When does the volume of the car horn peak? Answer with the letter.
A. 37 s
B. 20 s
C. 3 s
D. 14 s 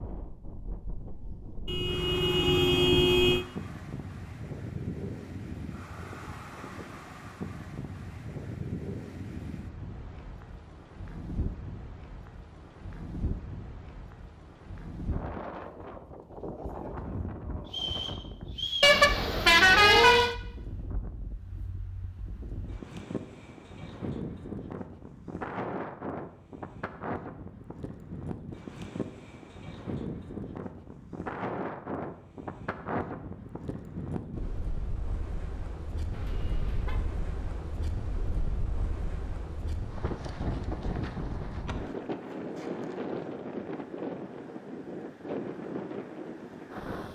B.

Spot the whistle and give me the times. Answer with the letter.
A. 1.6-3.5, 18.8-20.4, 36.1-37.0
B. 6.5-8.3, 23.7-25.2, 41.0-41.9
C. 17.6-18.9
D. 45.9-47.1
C.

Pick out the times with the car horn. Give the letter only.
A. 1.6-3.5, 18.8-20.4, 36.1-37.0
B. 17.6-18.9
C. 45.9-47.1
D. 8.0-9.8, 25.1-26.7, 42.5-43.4
A.